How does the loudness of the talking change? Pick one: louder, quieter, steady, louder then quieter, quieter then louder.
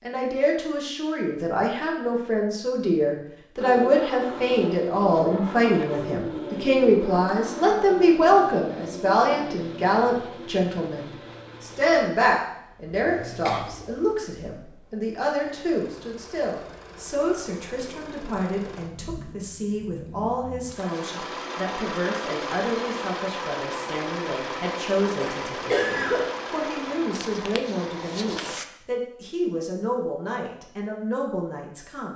quieter.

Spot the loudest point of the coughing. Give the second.
26 s.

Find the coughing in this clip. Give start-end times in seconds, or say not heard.
13.4-13.9, 25.2-26.3.